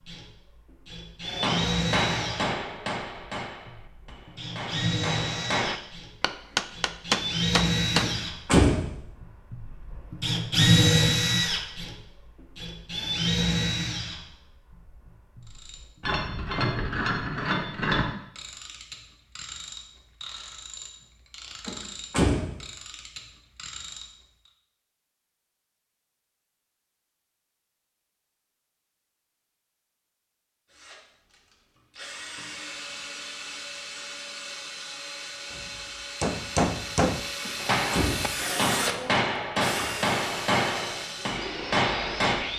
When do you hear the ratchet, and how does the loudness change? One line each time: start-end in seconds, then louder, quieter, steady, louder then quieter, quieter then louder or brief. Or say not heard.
15.4-24.5 quieter.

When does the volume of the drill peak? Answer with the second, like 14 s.
11 s.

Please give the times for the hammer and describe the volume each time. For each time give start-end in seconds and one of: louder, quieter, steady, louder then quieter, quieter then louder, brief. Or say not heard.
1.2-8.1 quieter then louder
35.5-42.5 steady.